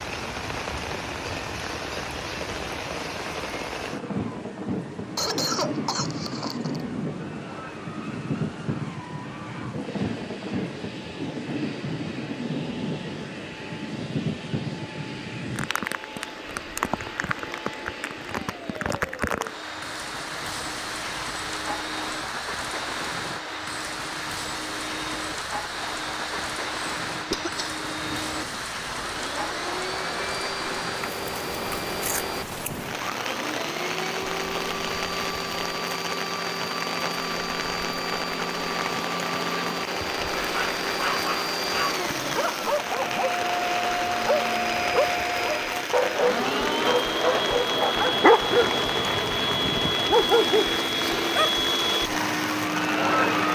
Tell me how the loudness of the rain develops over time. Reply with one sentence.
The loudness of the rain stays about the same.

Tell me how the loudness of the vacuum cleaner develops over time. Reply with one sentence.
The volume of the vacuum cleaner goes up.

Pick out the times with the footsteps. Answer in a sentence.
You can't hear the footsteps here.